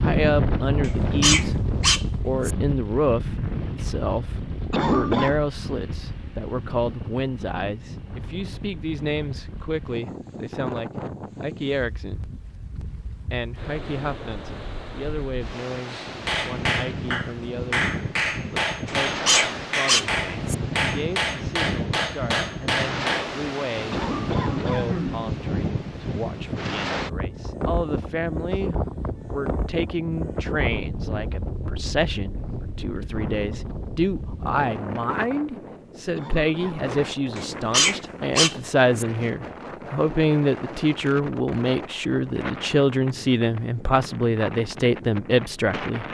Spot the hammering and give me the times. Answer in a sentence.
You can hear the hammering from 15.9 to 23.3 s.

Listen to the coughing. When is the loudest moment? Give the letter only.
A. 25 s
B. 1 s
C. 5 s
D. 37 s
C.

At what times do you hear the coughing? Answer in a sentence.
The coughing can be heard from 4.7 to 5.3 s, from 23.9 to 25.3 s and from 36.1 to 37.0 s.